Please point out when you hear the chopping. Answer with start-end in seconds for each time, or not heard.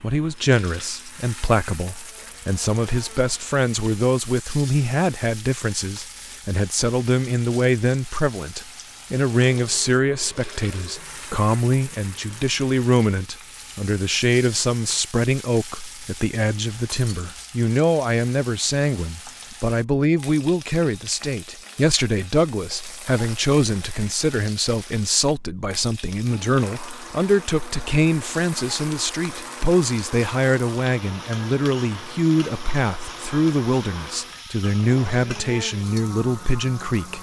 not heard.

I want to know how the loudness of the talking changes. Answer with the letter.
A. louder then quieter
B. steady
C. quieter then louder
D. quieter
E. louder
B.